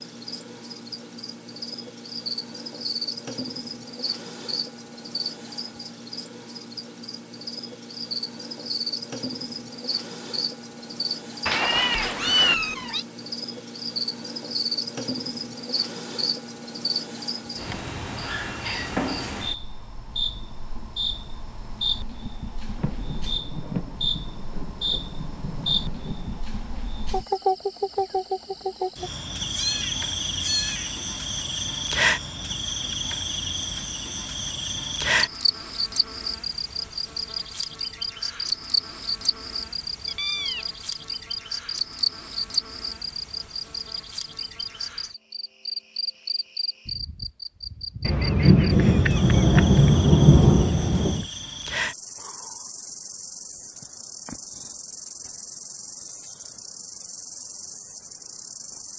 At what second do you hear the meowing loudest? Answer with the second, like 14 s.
12 s.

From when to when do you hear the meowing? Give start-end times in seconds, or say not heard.
11.4-13.1, 29.4-30.9, 40.0-40.6.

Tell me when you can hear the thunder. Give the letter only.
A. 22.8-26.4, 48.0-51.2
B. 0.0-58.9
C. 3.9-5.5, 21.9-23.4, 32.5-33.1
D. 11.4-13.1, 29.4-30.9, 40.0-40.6
A.